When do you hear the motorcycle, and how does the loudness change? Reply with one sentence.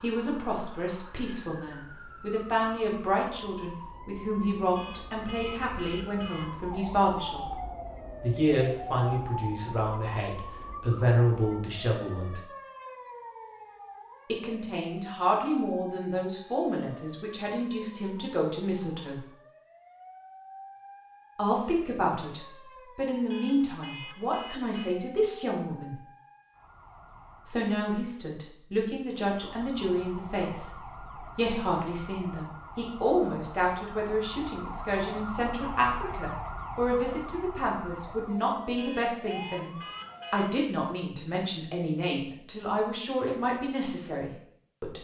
The motorcycle can't be heard in this clip.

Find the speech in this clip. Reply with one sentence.
The speech can be heard from 0.0 to 7.6 s, from 8.2 to 12.4 s, from 14.2 to 19.2 s, from 21.4 to 25.9 s and from 27.4 to 44.9 s.